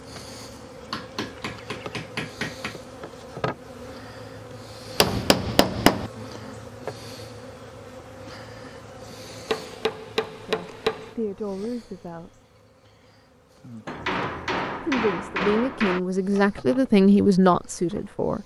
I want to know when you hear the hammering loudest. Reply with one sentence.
The loudest moment of the hammering is at 6 seconds.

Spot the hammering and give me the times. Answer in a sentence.
The hammering can be heard from 0.9 to 2.8 s, from 5.0 to 6.1 s, from 9.4 to 11.2 s and from 13.8 to 16.0 s.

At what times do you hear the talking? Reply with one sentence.
You can hear the talking from 10.4 to 12.3 s and from 14.8 to 18.4 s.